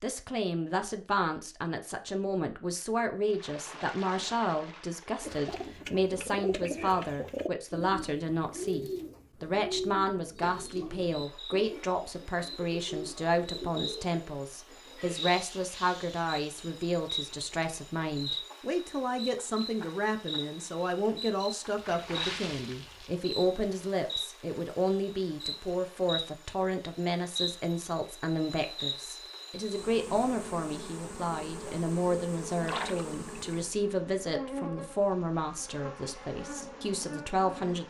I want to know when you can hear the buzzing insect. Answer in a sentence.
The buzzing insect can be heard from 11.0 to 37.8 s.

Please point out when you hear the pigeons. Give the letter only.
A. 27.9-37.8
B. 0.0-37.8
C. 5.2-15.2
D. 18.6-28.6
C.